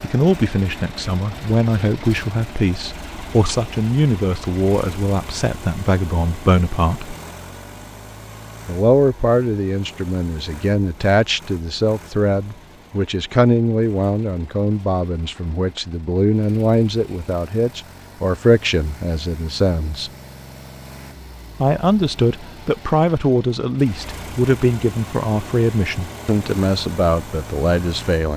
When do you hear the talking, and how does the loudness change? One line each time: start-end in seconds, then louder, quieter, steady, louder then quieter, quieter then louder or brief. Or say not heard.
0.0-7.2 steady
8.7-20.1 steady
21.6-28.3 steady.